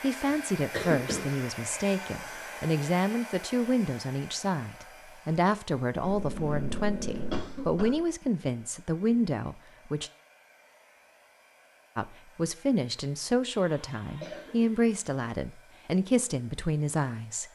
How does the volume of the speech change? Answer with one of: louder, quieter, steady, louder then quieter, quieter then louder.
steady.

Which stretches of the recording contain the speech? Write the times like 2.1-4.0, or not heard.
0.0-10.1, 11.9-17.5.